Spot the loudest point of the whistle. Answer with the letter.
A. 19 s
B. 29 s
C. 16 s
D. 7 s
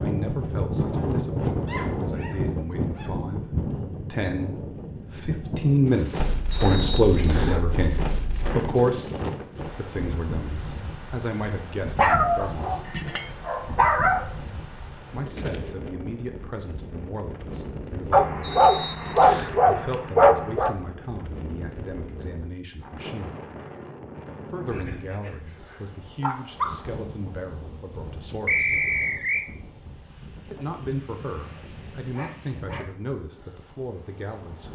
B.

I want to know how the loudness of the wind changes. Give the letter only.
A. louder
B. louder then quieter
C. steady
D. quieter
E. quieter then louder
D.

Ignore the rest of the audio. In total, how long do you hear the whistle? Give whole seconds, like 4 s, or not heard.
3 s.